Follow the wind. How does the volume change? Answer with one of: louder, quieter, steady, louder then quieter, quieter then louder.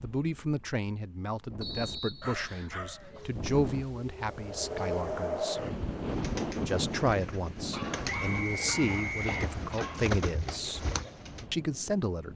louder then quieter.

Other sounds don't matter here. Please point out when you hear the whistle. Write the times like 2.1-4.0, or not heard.
1.6-2.8, 8.1-9.5.